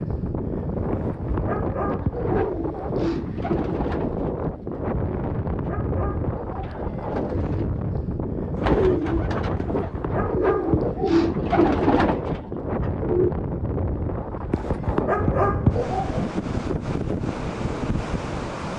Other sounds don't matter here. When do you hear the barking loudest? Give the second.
16 s.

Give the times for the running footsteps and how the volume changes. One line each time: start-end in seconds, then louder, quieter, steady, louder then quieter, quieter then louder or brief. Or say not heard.
not heard.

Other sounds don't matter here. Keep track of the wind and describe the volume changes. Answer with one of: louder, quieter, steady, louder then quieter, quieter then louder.
steady.